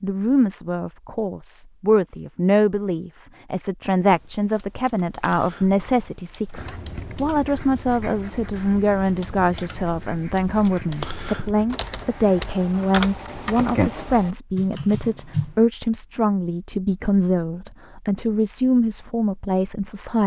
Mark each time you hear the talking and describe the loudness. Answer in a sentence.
The talking can be heard from 0.0 to 20.2 s, at a steady volume.